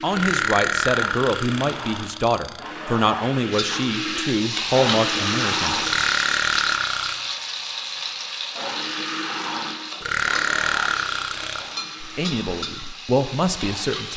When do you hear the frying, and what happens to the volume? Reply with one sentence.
You can hear the frying from 3.5 to 14.1 s, getting quieter.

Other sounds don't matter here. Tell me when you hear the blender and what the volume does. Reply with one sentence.
You can hear the blender from 0.0 to 5.8 s, getting louder; and from 8.6 to 13.9 s, getting quieter.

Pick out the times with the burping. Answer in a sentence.
The burping can be heard from 0.1 to 2.7 s, from 5.8 to 7.2 s and from 10.0 to 11.8 s.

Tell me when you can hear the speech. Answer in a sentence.
The speech can be heard from 0.0 to 5.9 s and from 12.0 to 14.1 s.